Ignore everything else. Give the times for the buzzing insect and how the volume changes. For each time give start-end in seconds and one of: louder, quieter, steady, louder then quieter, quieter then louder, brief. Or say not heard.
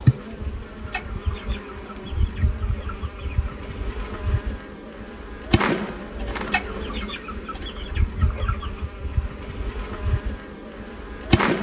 0.0-11.5 louder then quieter.